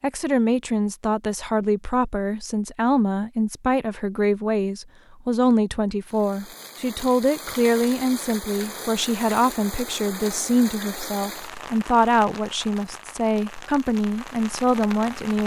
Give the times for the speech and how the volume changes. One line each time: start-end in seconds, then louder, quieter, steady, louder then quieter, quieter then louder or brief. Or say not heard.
0.0-15.4 steady.